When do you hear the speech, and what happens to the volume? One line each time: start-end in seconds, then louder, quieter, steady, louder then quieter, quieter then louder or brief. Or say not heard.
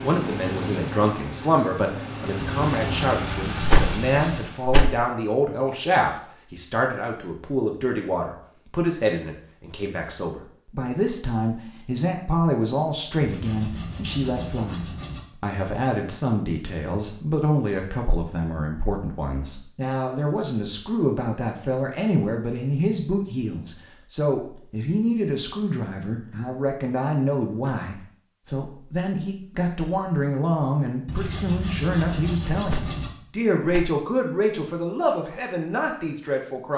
0.0-36.7 steady.